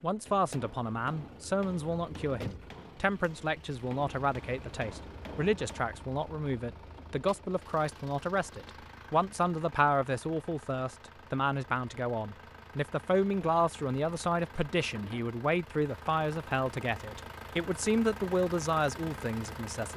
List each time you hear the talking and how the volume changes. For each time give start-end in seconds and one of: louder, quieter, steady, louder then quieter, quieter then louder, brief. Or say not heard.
0.0-19.9 steady.